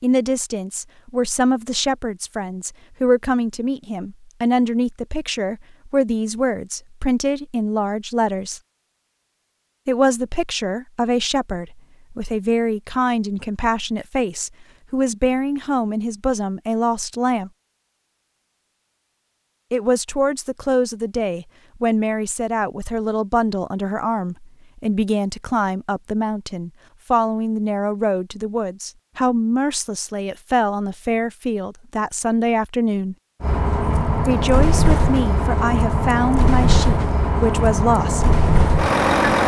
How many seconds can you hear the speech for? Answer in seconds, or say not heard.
34 s.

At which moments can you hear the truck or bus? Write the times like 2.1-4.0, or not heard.
33.4-39.4.